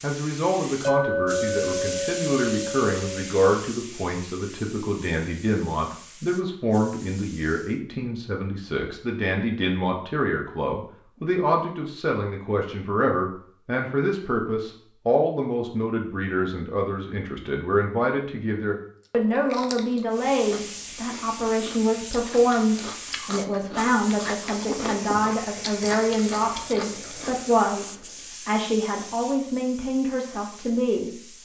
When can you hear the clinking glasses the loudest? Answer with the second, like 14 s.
1 s.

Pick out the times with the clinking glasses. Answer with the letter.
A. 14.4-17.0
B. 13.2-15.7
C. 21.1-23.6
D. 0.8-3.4
D.